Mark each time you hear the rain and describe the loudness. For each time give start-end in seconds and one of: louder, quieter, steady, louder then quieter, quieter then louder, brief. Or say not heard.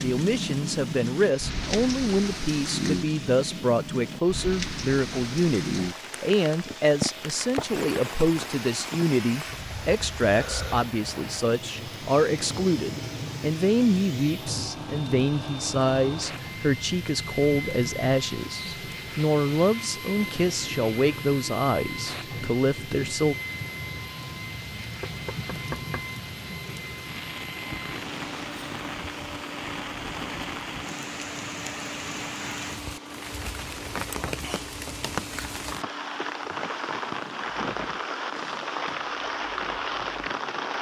0.0-40.7 quieter then louder.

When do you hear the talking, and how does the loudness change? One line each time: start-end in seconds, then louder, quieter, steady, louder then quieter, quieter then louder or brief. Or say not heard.
0.0-23.4 steady.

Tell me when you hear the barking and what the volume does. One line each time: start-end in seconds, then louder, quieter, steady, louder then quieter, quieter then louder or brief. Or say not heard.
not heard.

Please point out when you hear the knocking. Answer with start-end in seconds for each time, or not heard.
25.0-26.1.